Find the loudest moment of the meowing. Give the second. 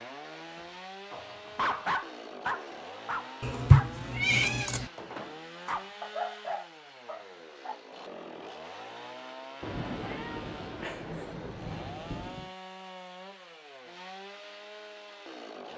4 s.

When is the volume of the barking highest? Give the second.
2 s.